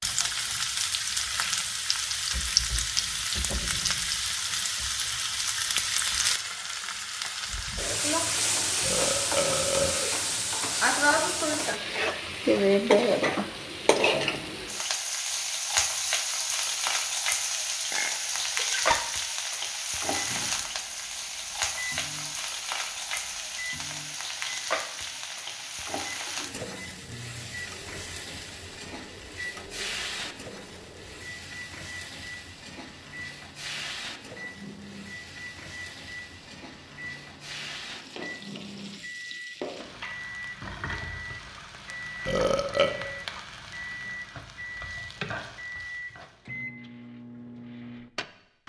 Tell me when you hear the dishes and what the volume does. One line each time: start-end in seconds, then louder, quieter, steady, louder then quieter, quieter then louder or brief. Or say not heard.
not heard.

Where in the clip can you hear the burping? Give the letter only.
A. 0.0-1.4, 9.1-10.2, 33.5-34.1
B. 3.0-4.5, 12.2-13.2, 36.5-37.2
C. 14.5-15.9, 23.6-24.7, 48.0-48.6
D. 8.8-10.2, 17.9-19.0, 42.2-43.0
D.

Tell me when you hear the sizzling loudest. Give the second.
13 s.